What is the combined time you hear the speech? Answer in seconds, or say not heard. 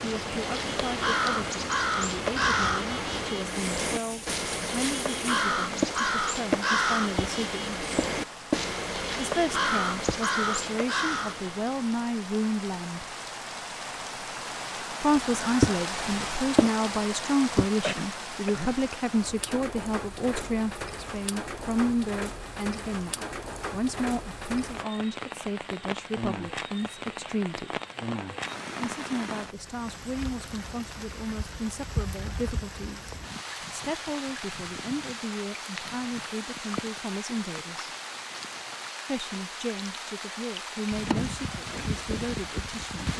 38 s.